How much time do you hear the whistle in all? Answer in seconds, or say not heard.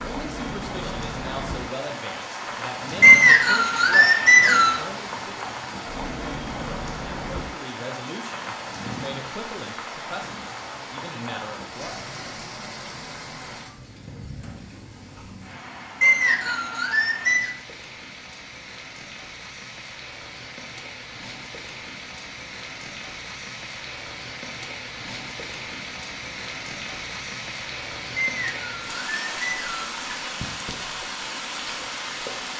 5 s.